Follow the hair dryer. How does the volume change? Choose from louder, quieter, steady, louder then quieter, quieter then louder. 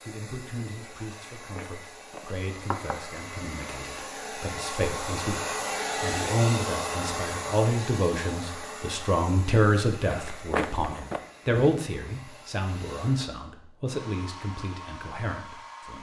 louder then quieter.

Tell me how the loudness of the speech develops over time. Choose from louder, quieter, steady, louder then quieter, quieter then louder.
louder then quieter.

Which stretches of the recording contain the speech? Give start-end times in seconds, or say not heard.
0.0-15.9.